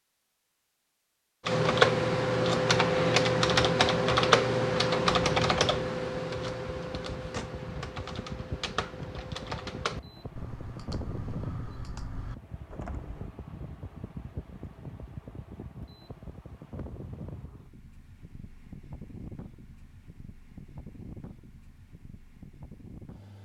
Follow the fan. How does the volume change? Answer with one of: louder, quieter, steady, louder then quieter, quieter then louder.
quieter.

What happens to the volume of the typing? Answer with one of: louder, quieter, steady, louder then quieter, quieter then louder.
quieter.